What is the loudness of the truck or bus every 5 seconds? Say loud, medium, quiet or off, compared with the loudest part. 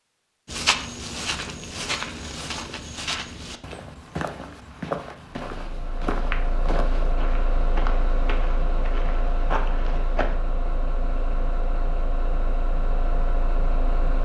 off, loud, loud.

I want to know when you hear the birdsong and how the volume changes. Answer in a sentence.
You can't hear the birdsong here.